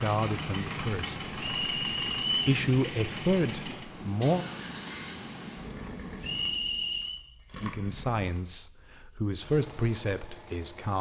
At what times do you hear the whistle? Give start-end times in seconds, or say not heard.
1.5-2.5, 6.2-7.2.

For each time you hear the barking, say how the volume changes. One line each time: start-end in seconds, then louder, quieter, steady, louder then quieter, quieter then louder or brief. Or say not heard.
not heard.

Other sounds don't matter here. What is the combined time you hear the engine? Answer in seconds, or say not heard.
11 s.